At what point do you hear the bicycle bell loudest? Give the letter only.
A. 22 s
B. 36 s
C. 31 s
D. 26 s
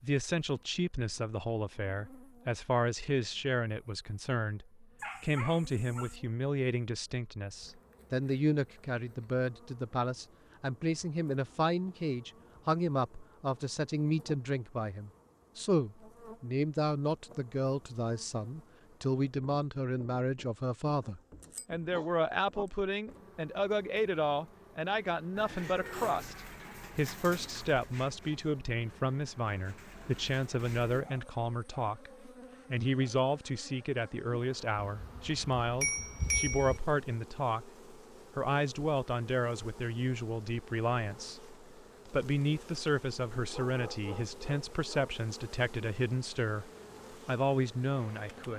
B.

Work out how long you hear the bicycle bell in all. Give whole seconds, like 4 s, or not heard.
3 s.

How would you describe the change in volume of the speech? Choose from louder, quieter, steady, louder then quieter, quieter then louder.
steady.